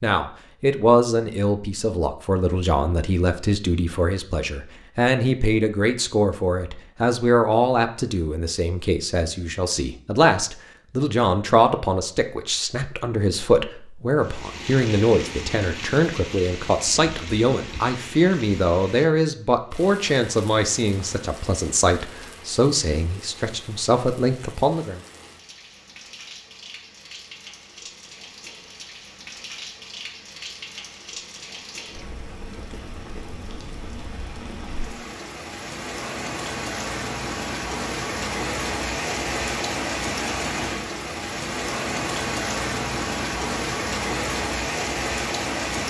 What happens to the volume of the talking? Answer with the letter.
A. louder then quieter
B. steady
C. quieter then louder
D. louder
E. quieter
B.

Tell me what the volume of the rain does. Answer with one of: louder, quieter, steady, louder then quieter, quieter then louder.
quieter then louder.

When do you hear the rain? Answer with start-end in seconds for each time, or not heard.
14.2-45.8.